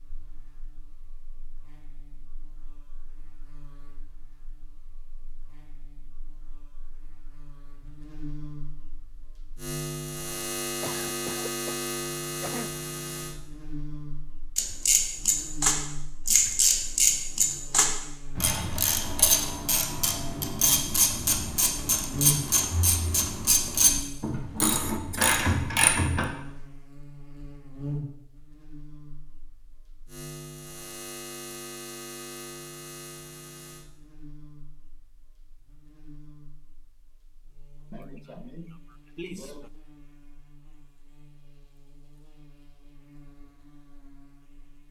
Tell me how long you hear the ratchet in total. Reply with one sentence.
You can hear the ratchet for 12 seconds altogether.